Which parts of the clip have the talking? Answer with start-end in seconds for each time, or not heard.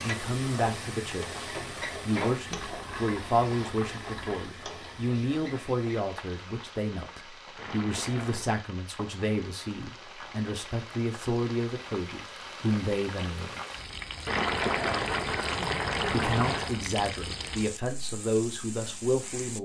0.0-13.6, 16.1-19.5.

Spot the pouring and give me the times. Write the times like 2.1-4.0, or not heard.
2.5-4.5, 7.5-8.5, 14.2-16.8.